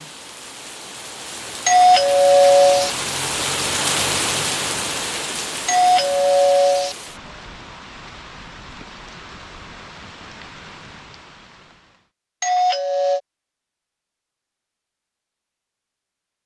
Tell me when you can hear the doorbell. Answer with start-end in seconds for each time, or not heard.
1.6-2.9, 5.7-7.0, 12.4-13.2.